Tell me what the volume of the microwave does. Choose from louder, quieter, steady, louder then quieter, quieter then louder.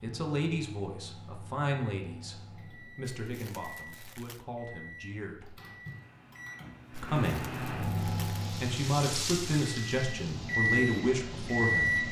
louder.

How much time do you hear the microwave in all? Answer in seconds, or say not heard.
12 s.